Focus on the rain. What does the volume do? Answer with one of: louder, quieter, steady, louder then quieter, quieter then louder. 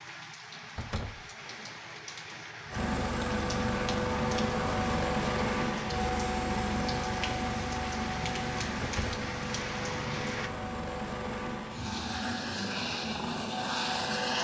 louder.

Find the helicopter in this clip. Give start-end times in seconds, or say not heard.
2.7-14.4.